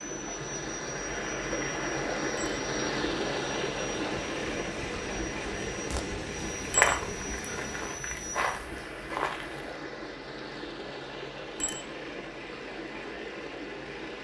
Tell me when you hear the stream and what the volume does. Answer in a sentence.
You can hear the stream from 0.0 to 14.1 s, getting quieter.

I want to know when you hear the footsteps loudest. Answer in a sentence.
The volume of the footsteps peaks at 7 seconds.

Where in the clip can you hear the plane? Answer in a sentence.
The plane can be heard from 0.0 to 8.6 s.